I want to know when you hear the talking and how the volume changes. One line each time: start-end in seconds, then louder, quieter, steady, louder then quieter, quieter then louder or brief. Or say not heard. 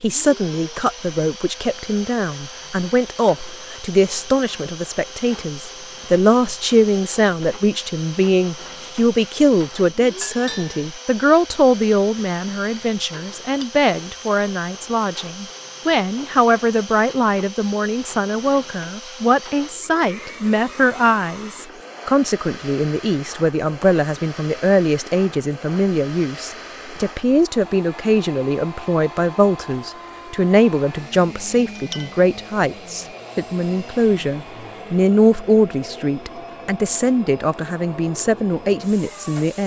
0.0-39.6 steady.